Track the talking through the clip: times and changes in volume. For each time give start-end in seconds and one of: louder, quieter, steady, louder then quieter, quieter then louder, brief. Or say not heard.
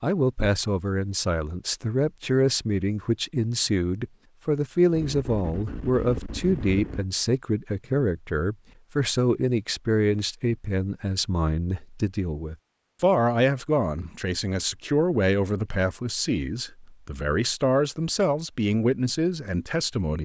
0.0-20.2 steady.